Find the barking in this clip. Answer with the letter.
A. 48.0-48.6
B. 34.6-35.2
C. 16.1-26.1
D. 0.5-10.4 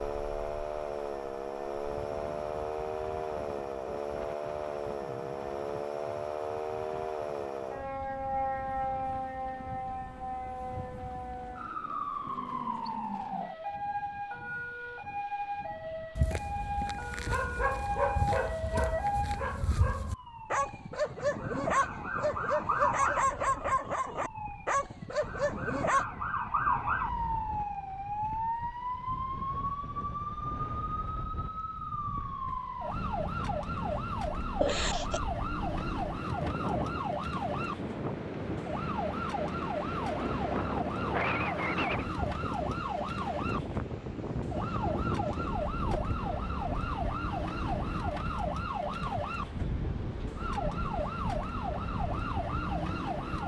C.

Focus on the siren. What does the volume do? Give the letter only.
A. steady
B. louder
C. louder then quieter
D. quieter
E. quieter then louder
A.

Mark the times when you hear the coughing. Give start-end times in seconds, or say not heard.
34.6-35.2.